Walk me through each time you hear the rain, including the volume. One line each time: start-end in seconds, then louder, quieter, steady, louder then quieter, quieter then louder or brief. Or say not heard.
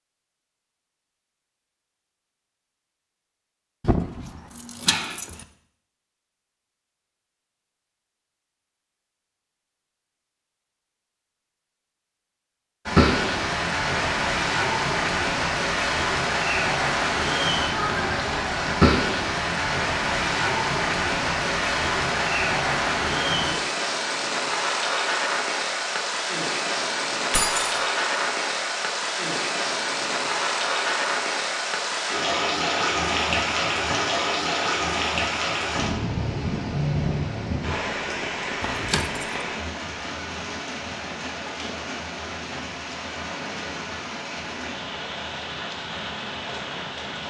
12.8-47.2 quieter.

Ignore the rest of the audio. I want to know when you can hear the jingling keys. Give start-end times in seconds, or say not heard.
3.8-5.5, 27.3-27.8, 38.6-39.4.